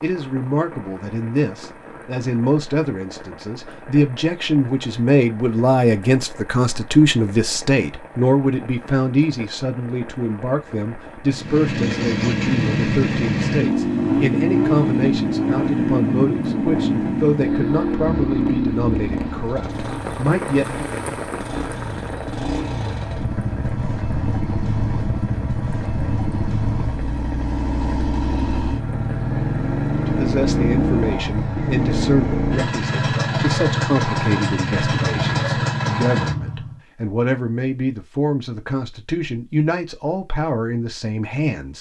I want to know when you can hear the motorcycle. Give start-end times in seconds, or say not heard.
11.3-36.8.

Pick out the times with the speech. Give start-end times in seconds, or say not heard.
0.0-20.9, 30.1-41.7.